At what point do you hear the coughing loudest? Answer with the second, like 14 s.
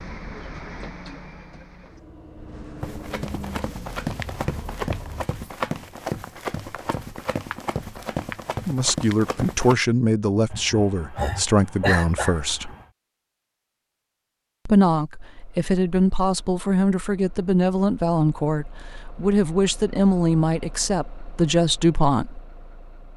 12 s.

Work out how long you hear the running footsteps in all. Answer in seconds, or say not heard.
7 s.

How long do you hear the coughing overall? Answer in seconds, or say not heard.
2 s.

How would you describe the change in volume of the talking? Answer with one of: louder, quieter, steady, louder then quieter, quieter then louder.
steady.